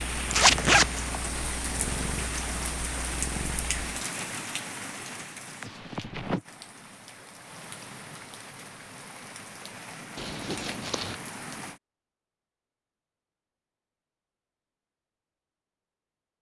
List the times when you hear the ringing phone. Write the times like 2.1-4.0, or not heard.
not heard.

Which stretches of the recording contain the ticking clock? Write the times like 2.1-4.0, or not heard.
not heard.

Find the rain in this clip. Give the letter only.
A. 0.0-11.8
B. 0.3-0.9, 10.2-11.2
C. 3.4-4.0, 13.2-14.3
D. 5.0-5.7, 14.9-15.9
A.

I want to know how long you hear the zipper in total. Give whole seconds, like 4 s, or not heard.
2 s.